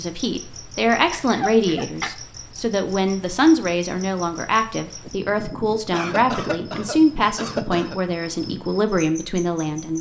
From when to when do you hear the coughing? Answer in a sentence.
You can hear the coughing from 1.1 to 2.1 s and from 5.9 to 8.0 s.